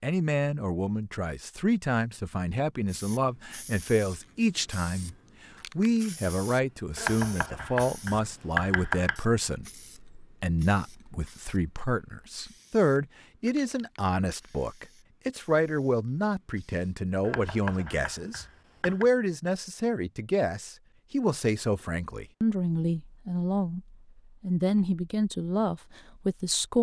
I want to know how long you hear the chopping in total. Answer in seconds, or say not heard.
4 s.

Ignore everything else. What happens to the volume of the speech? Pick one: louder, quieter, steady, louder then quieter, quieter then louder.
steady.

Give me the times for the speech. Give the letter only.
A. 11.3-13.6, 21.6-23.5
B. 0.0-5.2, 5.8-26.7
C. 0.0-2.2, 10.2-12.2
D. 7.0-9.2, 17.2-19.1
B.